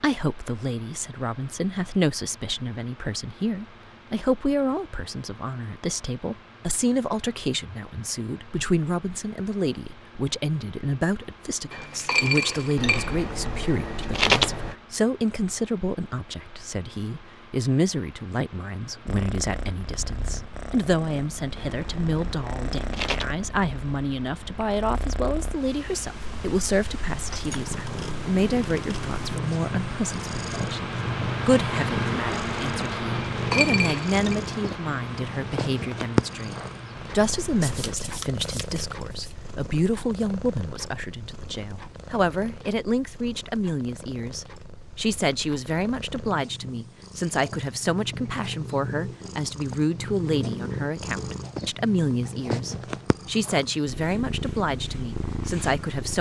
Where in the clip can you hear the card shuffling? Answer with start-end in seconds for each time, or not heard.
12.8-14.8, 21.6-23.4, 37.6-39.4.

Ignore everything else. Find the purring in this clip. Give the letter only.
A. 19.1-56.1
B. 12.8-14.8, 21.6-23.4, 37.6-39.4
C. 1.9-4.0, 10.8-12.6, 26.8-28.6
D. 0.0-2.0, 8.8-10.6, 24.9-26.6
A.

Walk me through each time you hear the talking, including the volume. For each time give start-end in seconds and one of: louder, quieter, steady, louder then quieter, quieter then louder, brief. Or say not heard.
0.0-56.1 steady.